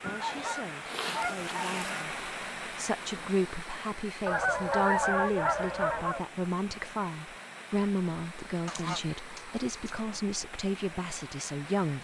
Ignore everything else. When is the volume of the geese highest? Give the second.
5 s.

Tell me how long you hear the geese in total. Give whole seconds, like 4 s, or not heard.
5 s.